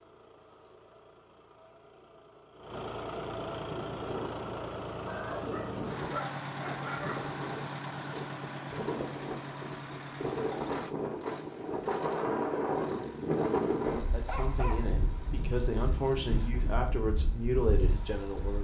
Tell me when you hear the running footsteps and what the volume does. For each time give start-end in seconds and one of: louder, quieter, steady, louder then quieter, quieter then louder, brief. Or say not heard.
not heard.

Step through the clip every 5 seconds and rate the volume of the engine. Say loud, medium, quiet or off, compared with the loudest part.
loud, loud, medium, quiet.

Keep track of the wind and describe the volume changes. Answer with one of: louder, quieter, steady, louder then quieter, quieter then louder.
louder then quieter.